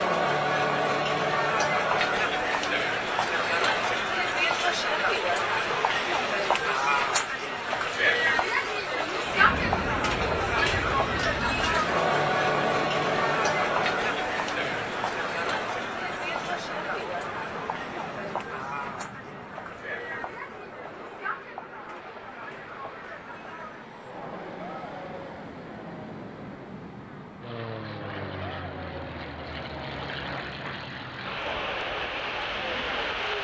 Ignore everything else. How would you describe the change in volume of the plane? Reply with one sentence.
The volume of the plane goes down, then up.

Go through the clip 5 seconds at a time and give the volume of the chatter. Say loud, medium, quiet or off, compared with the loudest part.
loud, loud, loud, medium, quiet, quiet, quiet.